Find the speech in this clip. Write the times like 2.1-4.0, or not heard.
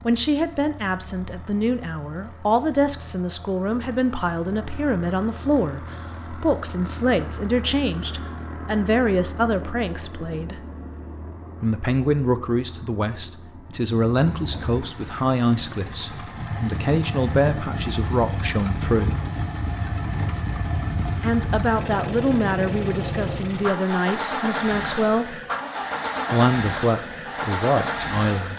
0.1-10.6, 11.6-19.1, 21.1-25.4, 26.3-28.5.